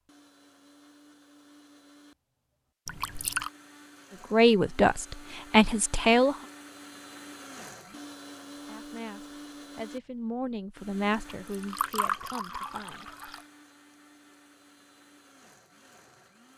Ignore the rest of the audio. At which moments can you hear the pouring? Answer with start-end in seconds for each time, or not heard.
2.9-3.5, 11.4-13.4.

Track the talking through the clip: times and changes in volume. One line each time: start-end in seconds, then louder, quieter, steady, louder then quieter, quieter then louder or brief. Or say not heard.
4.3-6.3 brief
8.6-13.1 louder then quieter.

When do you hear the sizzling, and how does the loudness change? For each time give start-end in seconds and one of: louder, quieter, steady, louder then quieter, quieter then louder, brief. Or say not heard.
not heard.